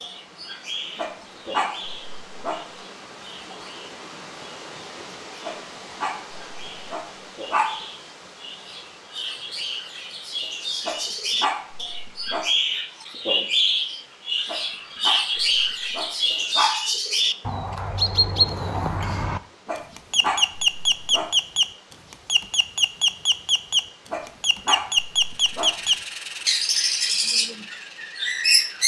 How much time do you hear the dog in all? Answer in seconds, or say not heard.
12 s.